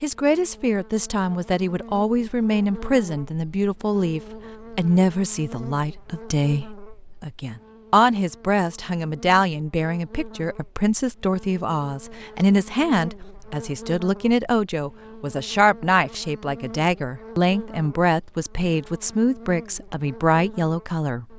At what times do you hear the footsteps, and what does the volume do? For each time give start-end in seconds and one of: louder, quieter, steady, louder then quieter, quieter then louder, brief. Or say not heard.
not heard.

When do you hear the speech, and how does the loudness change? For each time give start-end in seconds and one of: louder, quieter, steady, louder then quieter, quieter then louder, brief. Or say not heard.
0.0-21.2 steady.